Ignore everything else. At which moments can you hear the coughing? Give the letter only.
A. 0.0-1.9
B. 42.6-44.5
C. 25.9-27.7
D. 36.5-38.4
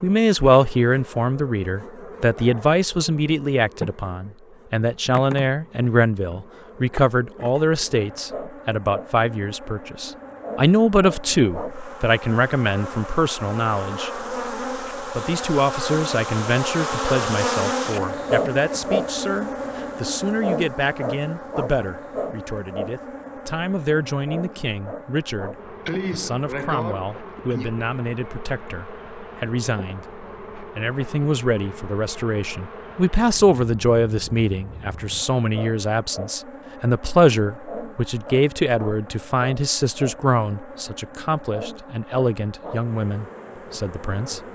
C.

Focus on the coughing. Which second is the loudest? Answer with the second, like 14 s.
26 s.